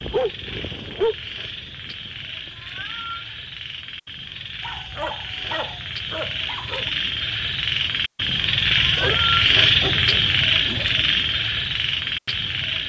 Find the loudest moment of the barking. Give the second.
1 s.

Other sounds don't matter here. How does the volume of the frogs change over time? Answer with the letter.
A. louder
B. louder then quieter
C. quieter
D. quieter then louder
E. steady
A.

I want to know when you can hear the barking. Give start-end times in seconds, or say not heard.
0.0-2.2, 4.6-6.9, 8.9-10.9.